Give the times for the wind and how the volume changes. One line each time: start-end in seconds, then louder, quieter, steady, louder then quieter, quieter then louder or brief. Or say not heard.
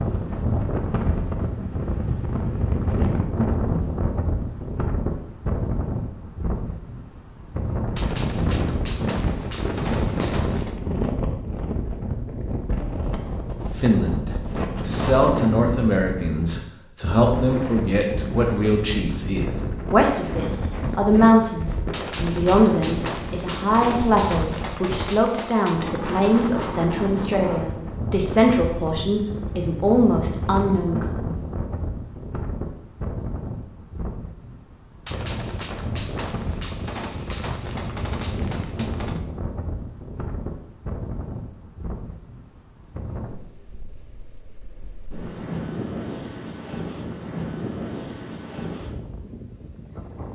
0.0-50.3 quieter.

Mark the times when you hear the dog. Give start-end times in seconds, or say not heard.
not heard.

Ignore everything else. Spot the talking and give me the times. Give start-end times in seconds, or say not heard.
13.7-31.1.